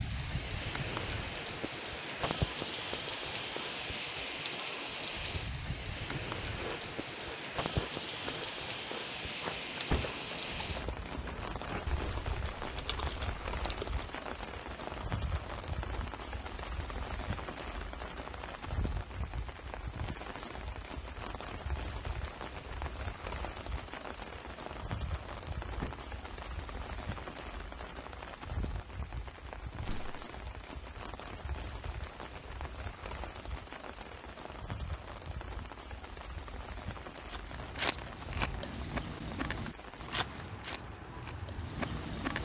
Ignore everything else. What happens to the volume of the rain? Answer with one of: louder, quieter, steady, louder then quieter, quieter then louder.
quieter.